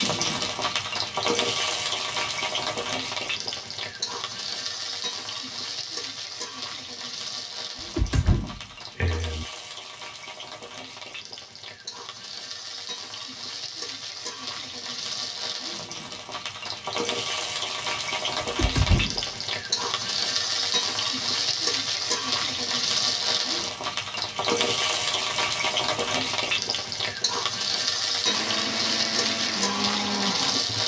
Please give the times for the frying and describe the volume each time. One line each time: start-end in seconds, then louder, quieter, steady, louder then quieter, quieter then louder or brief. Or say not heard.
0.0-30.8 quieter then louder.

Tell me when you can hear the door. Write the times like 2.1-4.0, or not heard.
8.0-9.4, 18.4-19.2.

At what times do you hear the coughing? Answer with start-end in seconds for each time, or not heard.
not heard.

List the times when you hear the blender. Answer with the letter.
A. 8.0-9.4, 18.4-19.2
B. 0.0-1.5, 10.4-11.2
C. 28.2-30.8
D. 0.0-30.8
C.